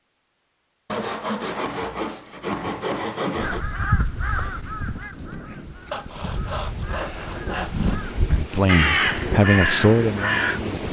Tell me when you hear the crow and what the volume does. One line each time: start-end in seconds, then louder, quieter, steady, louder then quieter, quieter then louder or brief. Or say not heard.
3.4-10.6 quieter then louder.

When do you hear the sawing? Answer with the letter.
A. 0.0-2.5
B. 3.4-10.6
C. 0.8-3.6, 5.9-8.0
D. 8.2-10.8
C.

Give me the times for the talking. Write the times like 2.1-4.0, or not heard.
8.2-10.8.